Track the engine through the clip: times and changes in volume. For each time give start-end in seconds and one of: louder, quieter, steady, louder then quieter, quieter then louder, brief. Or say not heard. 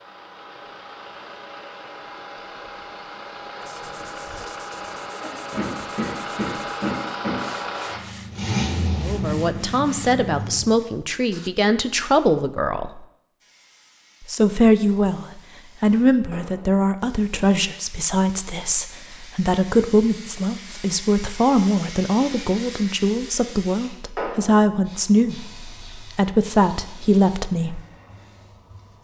0.0-10.8 louder.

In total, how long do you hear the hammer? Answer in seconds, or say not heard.
2 s.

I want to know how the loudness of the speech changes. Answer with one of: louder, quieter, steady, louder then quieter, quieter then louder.
steady.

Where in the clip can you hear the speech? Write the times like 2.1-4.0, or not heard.
9.0-13.1, 14.2-27.8.